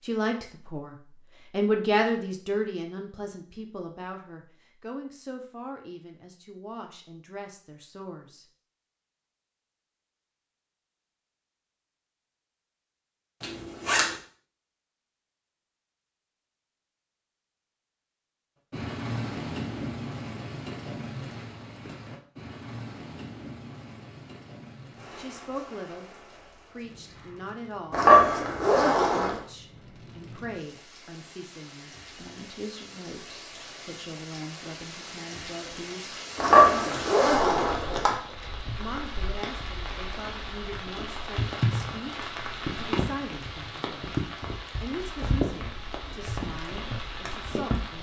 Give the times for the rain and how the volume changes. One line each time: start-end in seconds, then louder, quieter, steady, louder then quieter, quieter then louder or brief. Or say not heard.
18.7-47.9 quieter then louder.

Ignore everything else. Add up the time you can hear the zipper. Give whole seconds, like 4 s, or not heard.
4 s.